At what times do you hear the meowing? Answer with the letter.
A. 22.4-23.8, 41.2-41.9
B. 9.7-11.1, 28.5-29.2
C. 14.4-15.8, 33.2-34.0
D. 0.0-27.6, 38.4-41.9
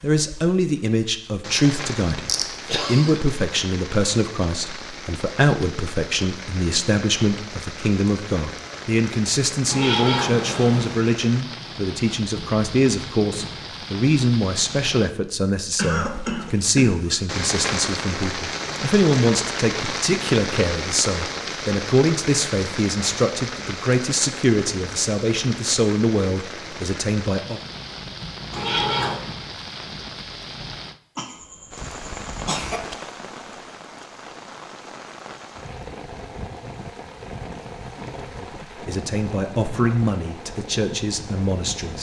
B.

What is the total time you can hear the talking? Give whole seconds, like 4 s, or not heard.
31 s.